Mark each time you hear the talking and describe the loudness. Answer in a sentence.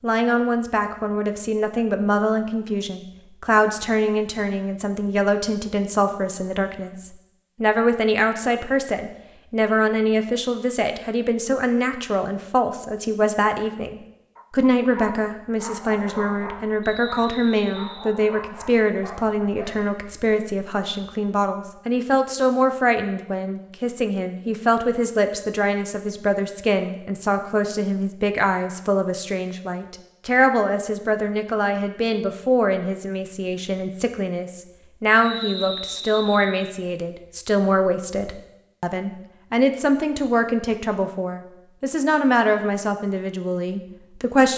You can hear the talking from 0.0 to 44.5 s, at a steady volume.